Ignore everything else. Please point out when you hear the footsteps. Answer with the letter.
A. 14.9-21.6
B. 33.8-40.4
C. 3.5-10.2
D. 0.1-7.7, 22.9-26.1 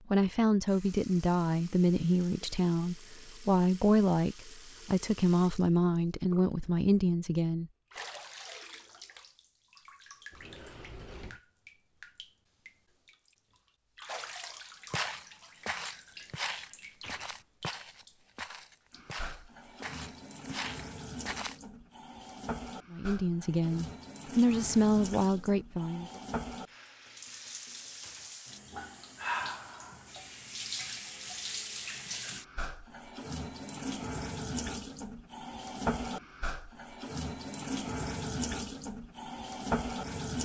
A.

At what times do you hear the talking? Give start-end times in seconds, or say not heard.
0.1-7.7, 22.9-26.1.